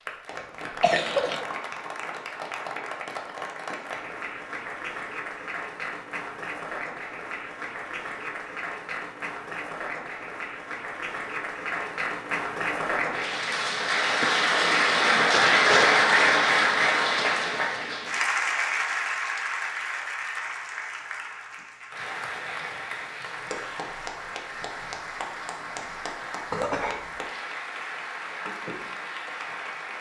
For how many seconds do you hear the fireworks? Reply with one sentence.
The fireworks can't be heard in this clip.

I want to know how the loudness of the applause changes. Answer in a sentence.
The volume of the applause goes up, then down.